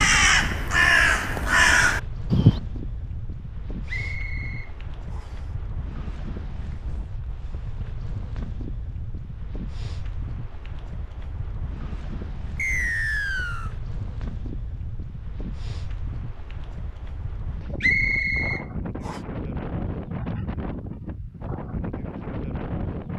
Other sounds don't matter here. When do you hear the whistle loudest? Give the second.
18 s.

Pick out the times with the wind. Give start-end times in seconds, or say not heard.
0.0-23.1.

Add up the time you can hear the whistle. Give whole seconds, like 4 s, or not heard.
4 s.